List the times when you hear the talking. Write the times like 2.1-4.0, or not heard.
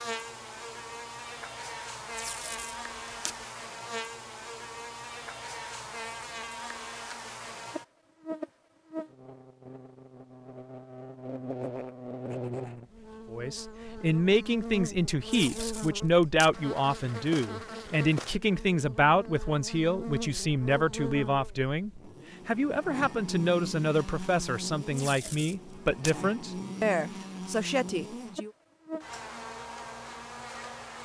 13.3-28.5.